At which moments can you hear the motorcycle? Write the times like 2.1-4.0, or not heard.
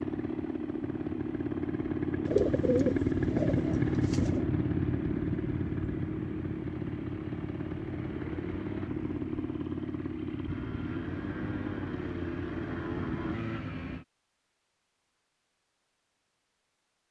0.0-14.1.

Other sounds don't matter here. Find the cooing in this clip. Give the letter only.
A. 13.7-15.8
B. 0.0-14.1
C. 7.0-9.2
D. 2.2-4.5
D.